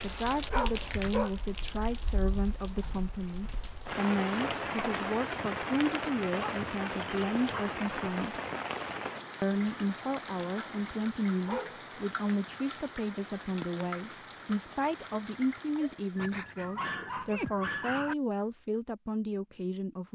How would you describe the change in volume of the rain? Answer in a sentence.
The volume of the rain goes up, then down.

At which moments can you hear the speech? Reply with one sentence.
You can hear the speech from 0.0 to 8.4 s and from 9.4 to 20.1 s.